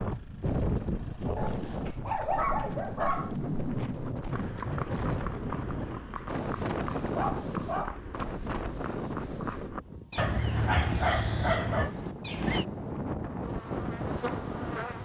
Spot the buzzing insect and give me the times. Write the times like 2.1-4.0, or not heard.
13.4-15.0.